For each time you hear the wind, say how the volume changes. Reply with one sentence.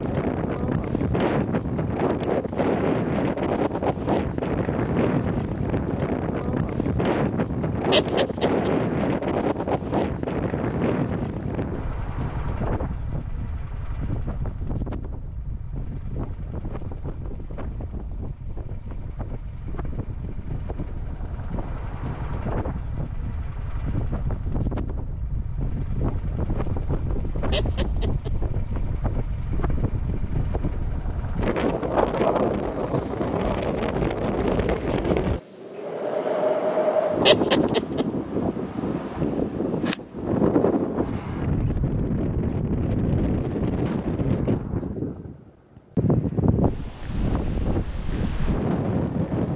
You can hear the wind from 0.0 to 49.5 s, getting quieter then louder.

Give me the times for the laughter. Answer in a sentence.
The laughter can be heard from 7.9 to 8.7 s, from 27.5 to 28.3 s and from 37.2 to 38.0 s.